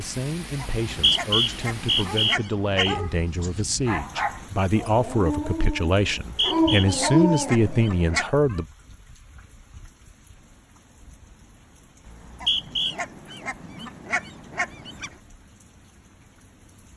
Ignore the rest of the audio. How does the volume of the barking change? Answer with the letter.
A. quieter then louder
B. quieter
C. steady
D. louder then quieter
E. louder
E.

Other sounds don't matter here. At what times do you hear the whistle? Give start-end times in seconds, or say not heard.
0.8-3.0, 6.2-6.8, 12.1-12.9.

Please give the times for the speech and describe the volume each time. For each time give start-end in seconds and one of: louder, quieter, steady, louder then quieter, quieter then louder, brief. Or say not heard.
0.0-8.7 louder.